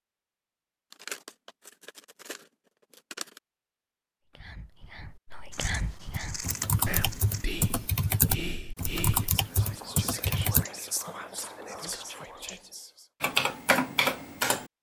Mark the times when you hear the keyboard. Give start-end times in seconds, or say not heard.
6.1-10.7, 13.2-14.7.